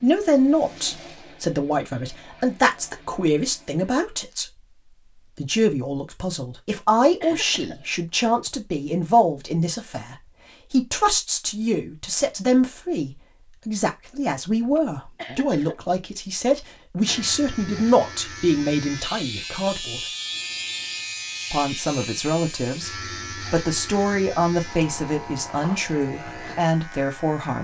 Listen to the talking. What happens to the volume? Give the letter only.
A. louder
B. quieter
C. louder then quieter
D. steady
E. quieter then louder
D.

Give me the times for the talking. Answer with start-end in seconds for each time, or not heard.
0.0-4.6, 5.3-20.1, 21.5-27.5.